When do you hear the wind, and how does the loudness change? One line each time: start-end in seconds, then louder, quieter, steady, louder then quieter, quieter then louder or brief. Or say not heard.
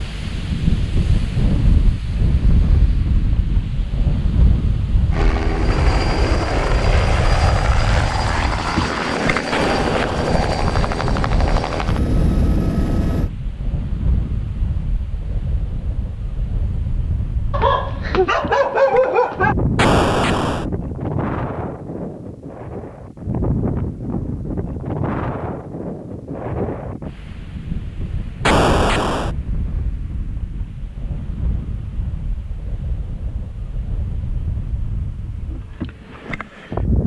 0.0-37.0 quieter.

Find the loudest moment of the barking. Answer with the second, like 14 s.
19 s.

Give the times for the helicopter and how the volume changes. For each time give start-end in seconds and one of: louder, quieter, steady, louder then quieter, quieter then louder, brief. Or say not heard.
5.1-13.3 steady.